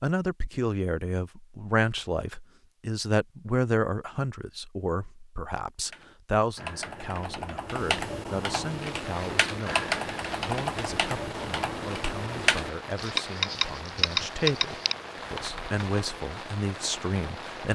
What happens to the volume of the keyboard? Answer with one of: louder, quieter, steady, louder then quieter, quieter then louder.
louder.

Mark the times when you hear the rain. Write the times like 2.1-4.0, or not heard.
8.6-17.6.